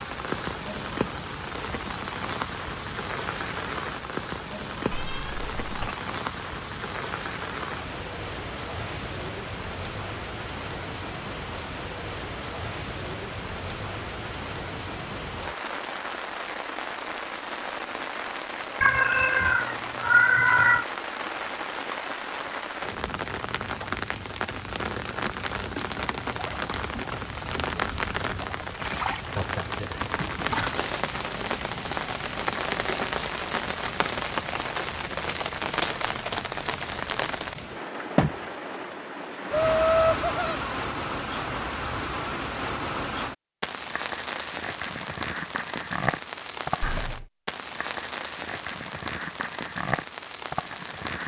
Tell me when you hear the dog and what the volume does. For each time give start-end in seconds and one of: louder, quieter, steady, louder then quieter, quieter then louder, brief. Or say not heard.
not heard.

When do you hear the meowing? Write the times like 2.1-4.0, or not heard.
4.9-6.0, 18.8-20.9, 46.8-47.3.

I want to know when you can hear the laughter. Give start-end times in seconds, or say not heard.
39.5-40.8.